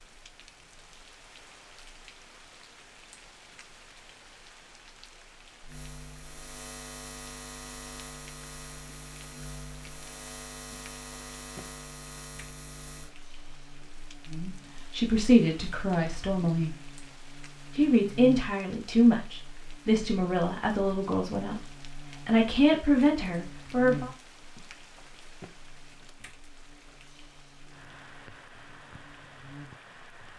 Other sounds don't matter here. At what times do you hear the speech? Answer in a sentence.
You can hear the speech from 14.3 to 16.8 s and from 17.8 to 24.1 s.